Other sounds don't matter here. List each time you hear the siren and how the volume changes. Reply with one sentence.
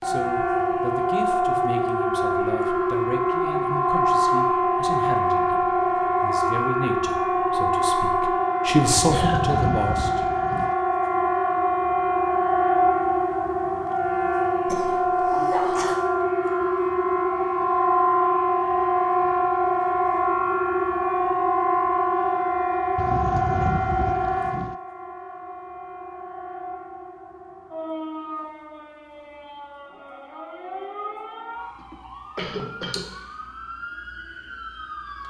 The siren can be heard from 0.0 to 35.2 s, getting quieter.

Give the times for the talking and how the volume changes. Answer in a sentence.
You can hear the talking from 0.0 to 10.2 s, getting louder.